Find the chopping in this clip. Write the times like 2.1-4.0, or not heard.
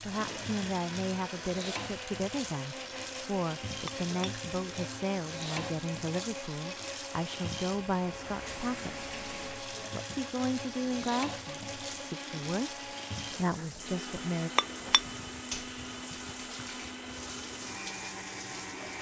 not heard.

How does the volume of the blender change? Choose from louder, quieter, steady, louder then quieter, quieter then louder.
steady.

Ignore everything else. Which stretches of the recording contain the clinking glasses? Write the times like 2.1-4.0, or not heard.
3.9-5.0, 14.6-15.0.